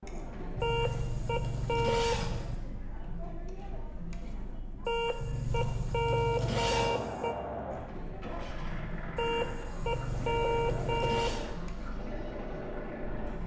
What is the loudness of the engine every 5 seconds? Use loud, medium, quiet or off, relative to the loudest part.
off, loud, loud.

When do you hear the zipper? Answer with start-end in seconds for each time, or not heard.
0.6-2.5, 5.2-7.0, 9.8-11.5.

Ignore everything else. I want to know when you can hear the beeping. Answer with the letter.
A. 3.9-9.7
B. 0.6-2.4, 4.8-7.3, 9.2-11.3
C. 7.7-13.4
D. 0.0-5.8
B.